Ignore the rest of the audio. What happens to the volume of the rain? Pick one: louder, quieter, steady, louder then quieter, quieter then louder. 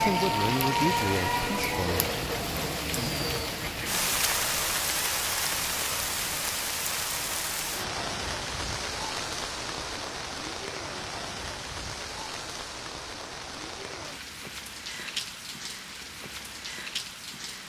quieter.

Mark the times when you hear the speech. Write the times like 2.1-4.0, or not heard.
0.0-2.1.